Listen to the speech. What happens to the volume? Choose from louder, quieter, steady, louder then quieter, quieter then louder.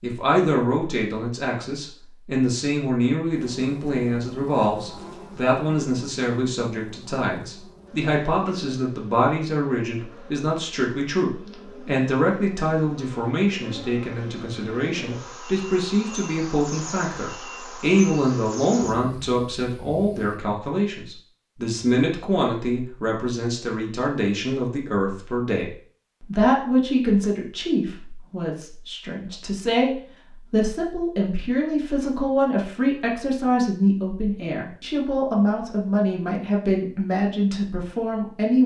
steady.